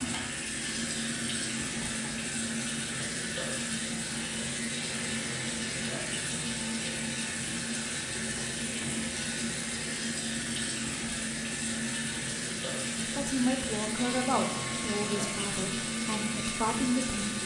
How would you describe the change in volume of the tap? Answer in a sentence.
The volume of the tap stays about the same.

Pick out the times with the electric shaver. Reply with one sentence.
The electric shaver can be heard from 0.1 to 17.4 s.